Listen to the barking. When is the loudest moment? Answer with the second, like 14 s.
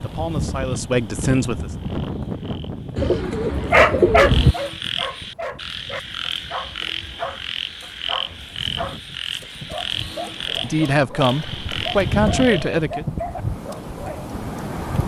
4 s.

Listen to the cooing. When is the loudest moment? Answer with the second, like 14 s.
4 s.